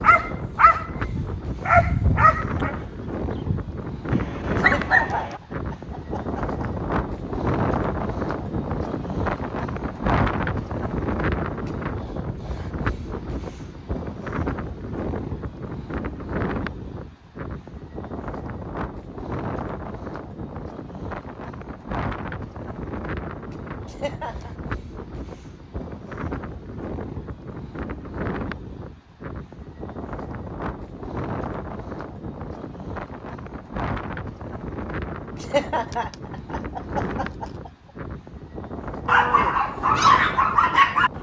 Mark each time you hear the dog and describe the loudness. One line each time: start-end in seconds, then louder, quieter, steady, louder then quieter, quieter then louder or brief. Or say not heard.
0.0-5.4 quieter then louder
39.0-41.1 brief.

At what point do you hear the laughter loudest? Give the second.
36 s.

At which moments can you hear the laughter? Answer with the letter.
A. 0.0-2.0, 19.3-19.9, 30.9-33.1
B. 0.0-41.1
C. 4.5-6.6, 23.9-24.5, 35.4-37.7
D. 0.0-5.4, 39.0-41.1
C.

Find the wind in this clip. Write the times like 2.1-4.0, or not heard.
0.0-41.1.